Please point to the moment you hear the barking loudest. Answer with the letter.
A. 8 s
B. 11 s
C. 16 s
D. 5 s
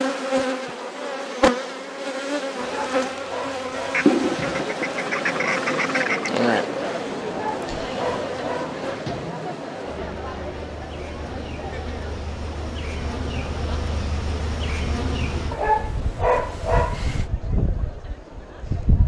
C.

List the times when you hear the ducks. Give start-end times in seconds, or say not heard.
3.9-6.3.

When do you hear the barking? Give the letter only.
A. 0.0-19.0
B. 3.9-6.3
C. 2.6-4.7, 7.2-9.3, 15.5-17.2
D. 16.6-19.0
C.